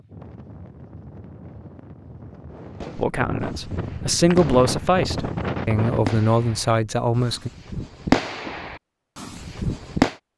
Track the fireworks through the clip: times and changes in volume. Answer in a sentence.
The fireworks can be heard from 2.5 to 10.2 s, getting louder then quieter.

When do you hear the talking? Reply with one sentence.
You can hear the talking from 3.0 to 7.5 s.